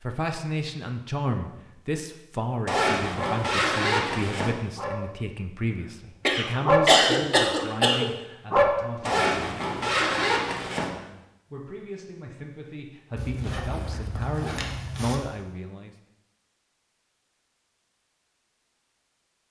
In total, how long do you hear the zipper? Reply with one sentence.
You can hear the zipper for 6 seconds altogether.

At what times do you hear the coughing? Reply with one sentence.
The coughing can be heard from 6.2 to 8.1 s.